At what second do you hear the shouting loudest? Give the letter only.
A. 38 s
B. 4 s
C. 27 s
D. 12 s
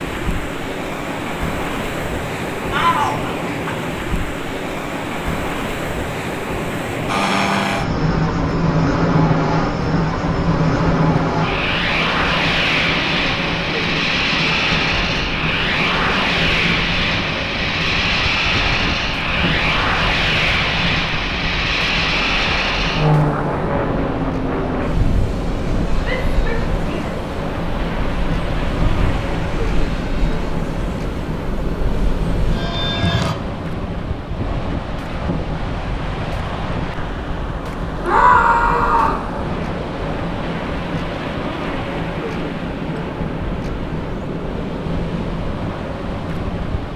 A.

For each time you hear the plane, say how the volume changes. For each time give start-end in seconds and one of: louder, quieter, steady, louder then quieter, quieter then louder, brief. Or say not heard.
7.0-33.4 quieter.